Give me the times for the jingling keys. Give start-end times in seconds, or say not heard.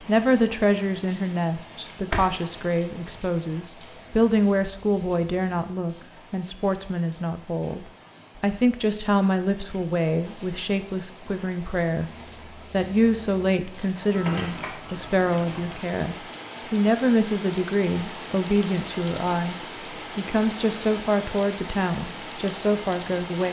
2.1-4.0, 14.1-15.8.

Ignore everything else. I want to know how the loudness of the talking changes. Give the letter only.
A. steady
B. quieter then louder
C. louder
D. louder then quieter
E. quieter
A.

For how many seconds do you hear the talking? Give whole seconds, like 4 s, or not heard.
23 s.